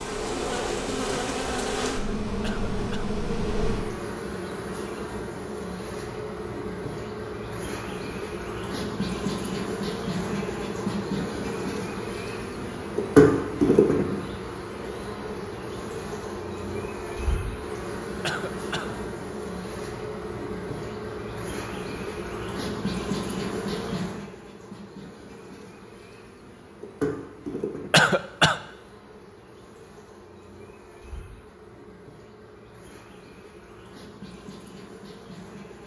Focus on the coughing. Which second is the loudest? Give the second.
28 s.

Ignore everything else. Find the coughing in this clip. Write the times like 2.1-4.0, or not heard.
2.4-3.2, 18.2-19.0, 27.9-28.6.